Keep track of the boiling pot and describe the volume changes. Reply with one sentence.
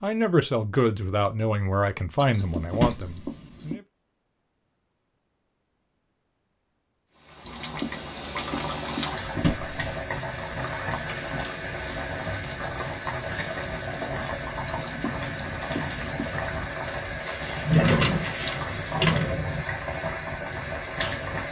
The volume of the boiling pot stays about the same.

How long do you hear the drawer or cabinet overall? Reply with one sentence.
You can hear the drawer or cabinet for 3 seconds altogether.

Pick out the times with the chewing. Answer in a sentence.
The chewing can be heard from 2.1 to 3.8 s, from 7.5 to 9.1 s and from 14.7 to 16.2 s.